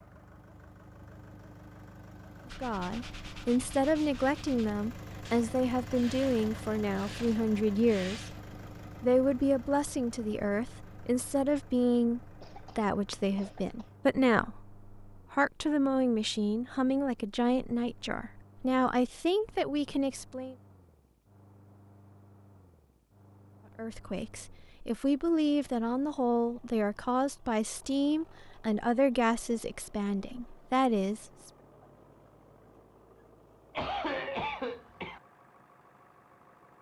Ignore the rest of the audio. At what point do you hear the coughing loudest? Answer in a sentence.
The volume of the coughing peaks at 34 seconds.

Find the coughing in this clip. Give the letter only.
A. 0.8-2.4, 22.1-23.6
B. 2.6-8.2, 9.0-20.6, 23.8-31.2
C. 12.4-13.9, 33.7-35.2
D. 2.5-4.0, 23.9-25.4
C.